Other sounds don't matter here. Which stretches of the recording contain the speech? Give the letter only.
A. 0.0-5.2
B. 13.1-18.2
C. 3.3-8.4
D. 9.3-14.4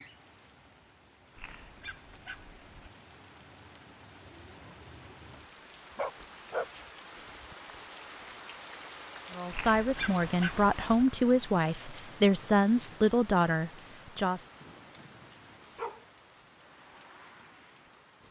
D.